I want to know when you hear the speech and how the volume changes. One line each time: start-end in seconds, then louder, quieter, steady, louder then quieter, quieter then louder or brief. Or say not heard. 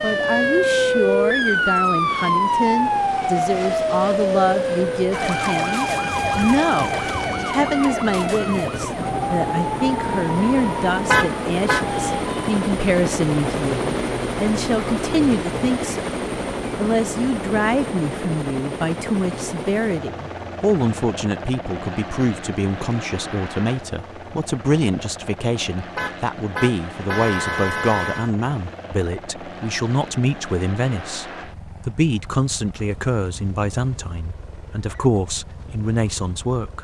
0.0-16.1 steady
16.8-36.7 steady.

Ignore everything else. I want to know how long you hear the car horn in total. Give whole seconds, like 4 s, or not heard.
3 s.